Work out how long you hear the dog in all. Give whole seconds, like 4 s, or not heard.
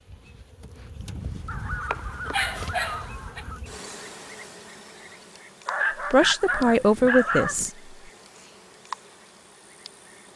4 s.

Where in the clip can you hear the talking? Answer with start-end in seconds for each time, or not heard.
6.1-8.0.